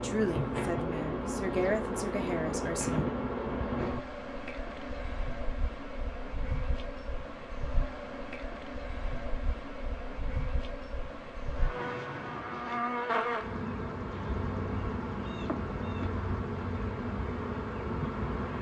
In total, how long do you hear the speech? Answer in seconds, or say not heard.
3 s.